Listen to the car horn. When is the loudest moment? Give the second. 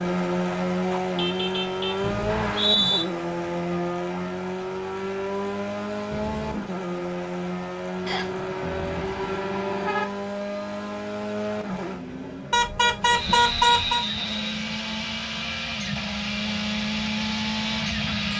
14 s.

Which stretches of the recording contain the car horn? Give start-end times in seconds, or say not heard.
1.1-2.1, 8.1-10.1, 12.5-14.1.